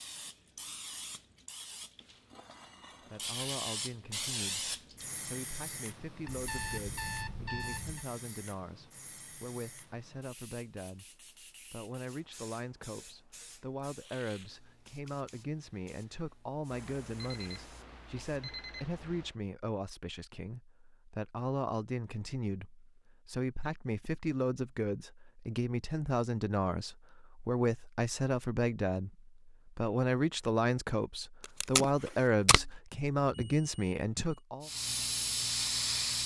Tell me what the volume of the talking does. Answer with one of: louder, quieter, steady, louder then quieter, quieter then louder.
louder.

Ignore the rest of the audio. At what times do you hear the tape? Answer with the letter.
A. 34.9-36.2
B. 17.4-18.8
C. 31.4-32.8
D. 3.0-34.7
C.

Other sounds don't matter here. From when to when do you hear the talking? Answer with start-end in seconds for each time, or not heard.
3.0-34.7.